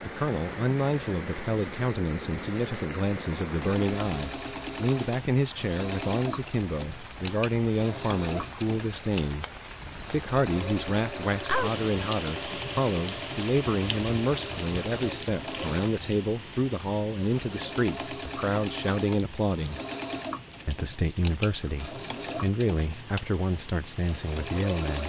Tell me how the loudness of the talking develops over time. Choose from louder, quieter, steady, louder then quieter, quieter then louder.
steady.